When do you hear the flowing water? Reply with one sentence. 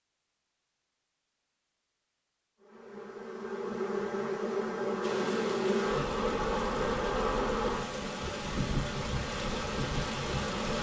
The flowing water can be heard from 5.0 to 10.7 s.